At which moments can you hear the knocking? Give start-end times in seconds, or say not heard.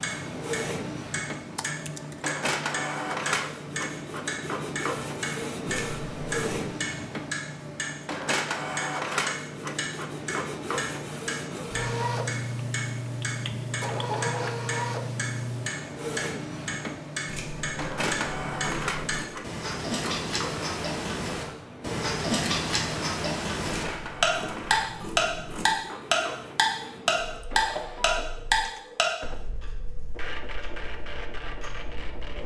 not heard.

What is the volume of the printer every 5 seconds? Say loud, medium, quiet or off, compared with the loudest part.
loud, loud, loud, loud, medium, medium, medium.